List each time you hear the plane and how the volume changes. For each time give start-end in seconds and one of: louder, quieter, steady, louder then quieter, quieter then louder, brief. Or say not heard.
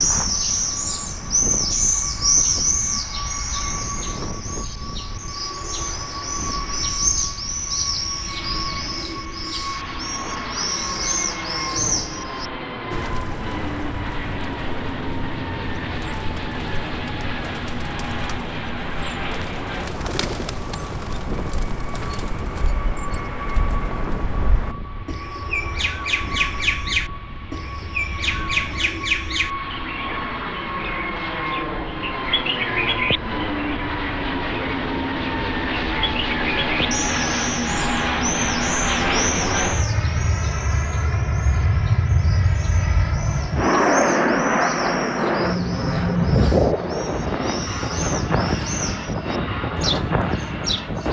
0.0-51.0 louder.